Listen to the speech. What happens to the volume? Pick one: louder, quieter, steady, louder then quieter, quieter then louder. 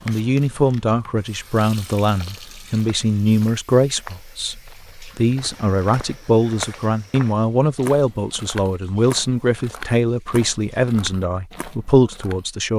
steady.